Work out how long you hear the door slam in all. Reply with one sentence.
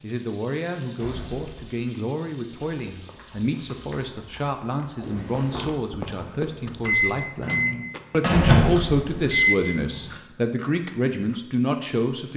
You can hear the door slam for 3 seconds altogether.